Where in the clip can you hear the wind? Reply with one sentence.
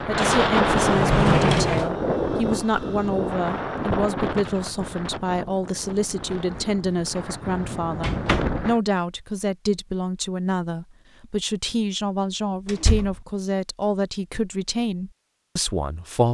You can hear the wind from 0.0 to 8.8 s.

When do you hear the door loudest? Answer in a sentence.
The volume of the door peaks at 1 second.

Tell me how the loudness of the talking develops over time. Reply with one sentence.
The volume of the talking stays about the same.